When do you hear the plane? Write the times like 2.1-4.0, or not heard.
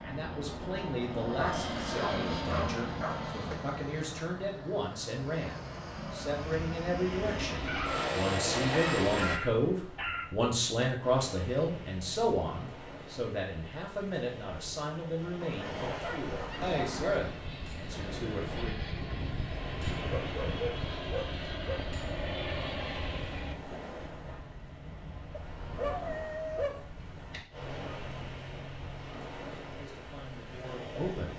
0.0-9.4, 16.6-23.6.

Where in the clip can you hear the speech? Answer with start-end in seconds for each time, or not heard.
0.0-18.7, 29.8-31.3.